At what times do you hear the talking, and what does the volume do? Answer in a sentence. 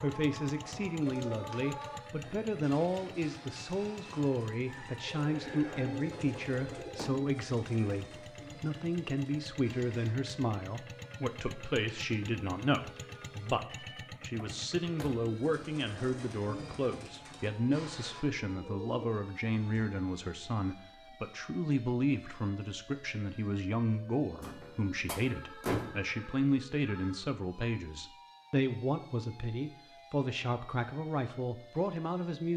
You can hear the talking from 0.0 to 32.5 s, at a steady volume.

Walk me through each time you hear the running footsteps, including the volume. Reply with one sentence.
You can't hear the running footsteps here.